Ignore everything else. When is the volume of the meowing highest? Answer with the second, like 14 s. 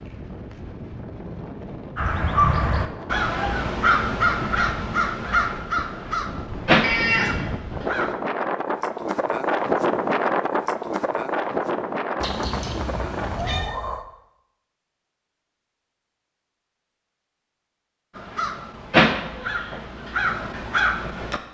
7 s.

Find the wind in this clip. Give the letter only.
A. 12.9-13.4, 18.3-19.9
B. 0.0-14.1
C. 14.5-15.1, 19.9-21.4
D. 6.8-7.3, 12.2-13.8
B.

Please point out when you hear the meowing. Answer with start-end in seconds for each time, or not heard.
6.8-7.3, 12.2-13.8.